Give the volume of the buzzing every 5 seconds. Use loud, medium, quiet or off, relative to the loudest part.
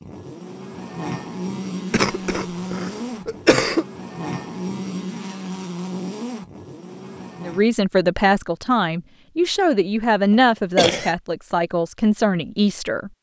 loud, loud, off.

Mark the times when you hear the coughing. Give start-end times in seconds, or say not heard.
1.9-3.9, 10.8-11.2.